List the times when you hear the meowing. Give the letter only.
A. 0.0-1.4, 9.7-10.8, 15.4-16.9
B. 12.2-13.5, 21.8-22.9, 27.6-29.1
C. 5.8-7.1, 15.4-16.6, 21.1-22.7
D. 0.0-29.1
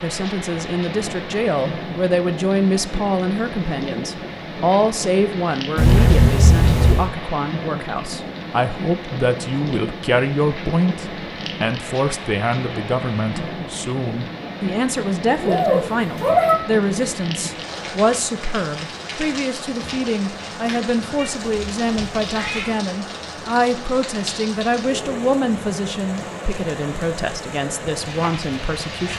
C.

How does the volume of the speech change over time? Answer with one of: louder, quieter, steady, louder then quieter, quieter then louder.
steady.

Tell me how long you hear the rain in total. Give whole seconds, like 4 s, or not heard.
29 s.